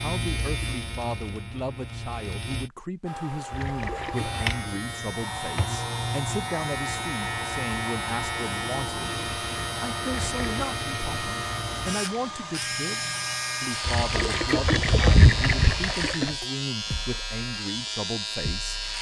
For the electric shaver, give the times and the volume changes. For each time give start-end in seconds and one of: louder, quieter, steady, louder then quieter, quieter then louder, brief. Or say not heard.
0.0-2.7 brief
4.1-18.9 steady.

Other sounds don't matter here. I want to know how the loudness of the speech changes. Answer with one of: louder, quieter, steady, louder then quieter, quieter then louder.
steady.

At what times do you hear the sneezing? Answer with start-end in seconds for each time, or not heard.
not heard.